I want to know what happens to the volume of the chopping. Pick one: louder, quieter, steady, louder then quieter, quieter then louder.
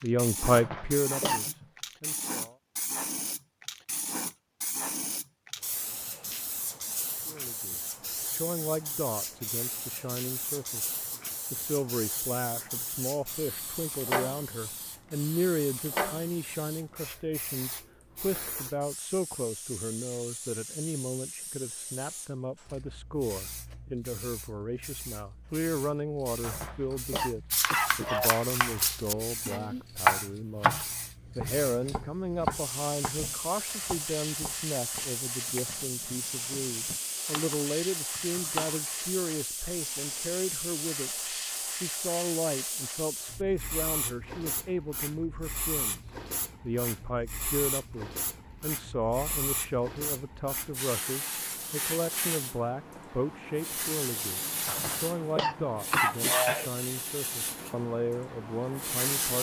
louder then quieter.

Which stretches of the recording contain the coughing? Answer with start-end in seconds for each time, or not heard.
0.5-1.6, 26.4-28.3, 54.6-56.7.